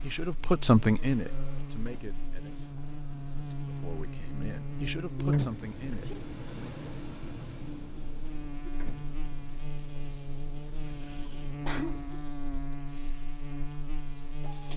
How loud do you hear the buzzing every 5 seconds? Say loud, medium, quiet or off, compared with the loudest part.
medium, loud, medium.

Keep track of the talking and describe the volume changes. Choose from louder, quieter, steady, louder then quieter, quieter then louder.
quieter then louder.